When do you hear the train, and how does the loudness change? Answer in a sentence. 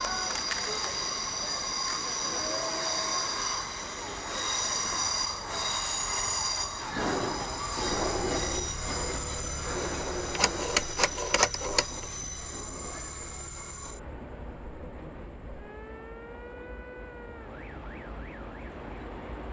The train can be heard from 0.0 to 19.4 s, getting quieter.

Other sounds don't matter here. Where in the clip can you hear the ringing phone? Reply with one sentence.
The ringing phone can be heard from 10.2 to 12.1 s.